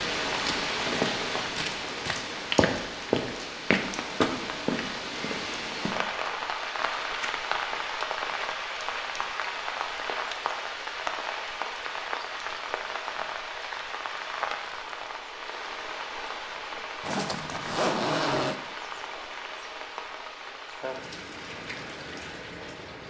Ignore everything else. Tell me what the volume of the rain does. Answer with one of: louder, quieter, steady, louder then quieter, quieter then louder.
quieter.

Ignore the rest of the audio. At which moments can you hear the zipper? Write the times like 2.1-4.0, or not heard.
17.0-18.6.